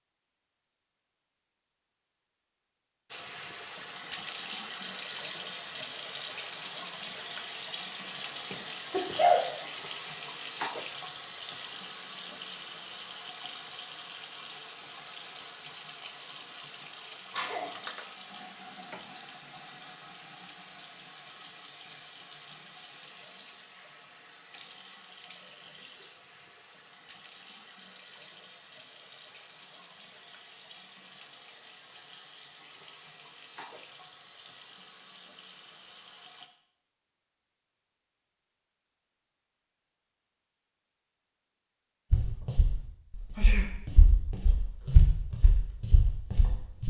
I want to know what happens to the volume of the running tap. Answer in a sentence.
The loudness of the running tap goes down.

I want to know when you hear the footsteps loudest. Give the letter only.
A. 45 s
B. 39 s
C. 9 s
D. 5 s
A.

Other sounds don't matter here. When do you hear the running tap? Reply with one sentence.
The running tap can be heard from 3.1 to 36.5 s.